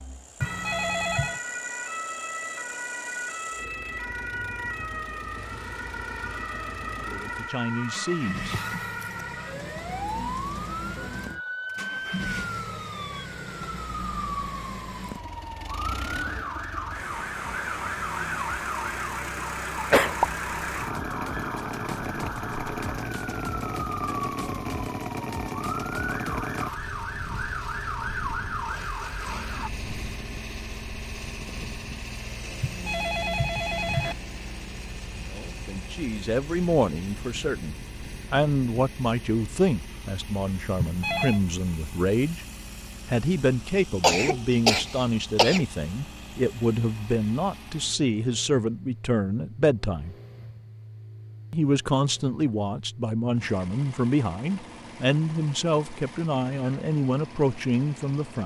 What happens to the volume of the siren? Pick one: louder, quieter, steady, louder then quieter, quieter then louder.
steady.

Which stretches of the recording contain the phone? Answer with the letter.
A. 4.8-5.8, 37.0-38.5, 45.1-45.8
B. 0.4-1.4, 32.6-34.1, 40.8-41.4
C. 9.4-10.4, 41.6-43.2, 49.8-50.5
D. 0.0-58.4
B.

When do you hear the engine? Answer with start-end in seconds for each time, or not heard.
0.0-58.4.